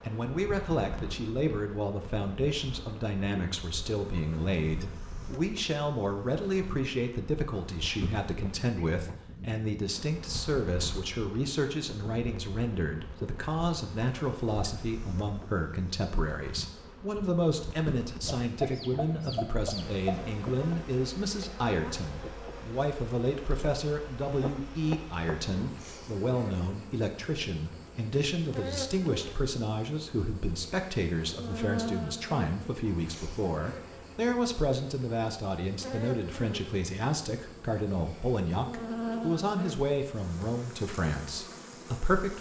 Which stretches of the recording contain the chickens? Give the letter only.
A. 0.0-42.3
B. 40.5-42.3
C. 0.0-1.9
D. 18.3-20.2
D.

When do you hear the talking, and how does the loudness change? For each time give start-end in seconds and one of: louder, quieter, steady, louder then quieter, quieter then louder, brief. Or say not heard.
0.0-42.3 steady.